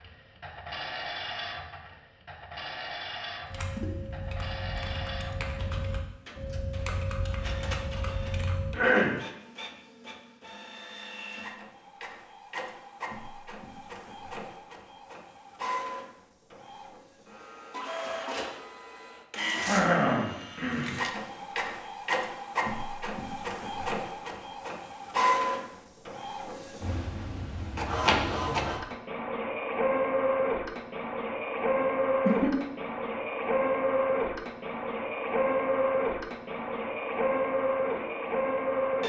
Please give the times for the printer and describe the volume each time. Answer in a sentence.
The printer can be heard from 0.0 to 39.0 s, getting louder.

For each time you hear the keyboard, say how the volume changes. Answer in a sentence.
You can hear the keyboard from 3.5 to 8.8 s, at a steady volume.